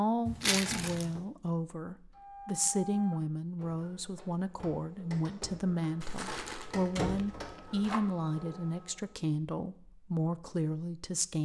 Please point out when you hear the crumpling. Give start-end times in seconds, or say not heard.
0.4-1.1, 6.0-8.0.